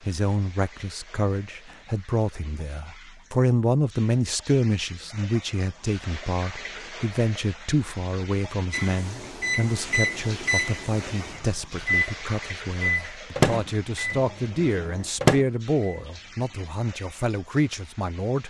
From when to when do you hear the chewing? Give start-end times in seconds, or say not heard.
not heard.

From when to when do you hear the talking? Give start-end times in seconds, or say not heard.
0.0-18.4.